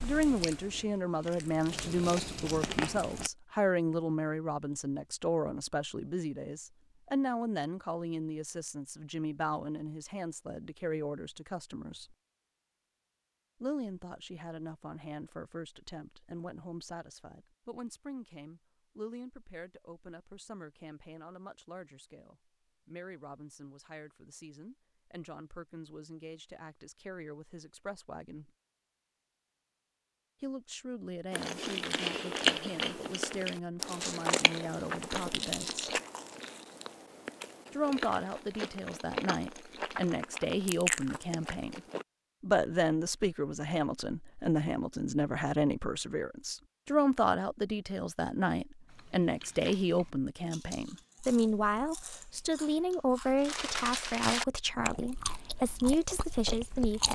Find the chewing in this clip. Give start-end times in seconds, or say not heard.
0.0-3.3, 31.3-42.0, 48.9-57.1.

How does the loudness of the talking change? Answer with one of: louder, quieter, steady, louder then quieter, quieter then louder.
quieter then louder.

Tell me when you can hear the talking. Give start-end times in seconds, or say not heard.
0.0-12.2, 13.6-28.5, 30.4-36.0, 37.7-41.8, 42.4-57.1.